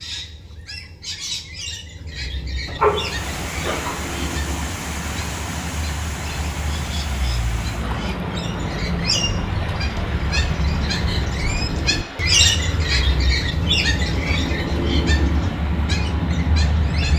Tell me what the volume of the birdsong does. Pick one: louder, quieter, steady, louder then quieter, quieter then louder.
louder.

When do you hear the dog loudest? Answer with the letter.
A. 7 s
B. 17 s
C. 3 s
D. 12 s
C.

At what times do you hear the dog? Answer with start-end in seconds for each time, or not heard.
2.6-4.2.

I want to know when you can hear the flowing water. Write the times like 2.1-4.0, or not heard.
2.8-17.1.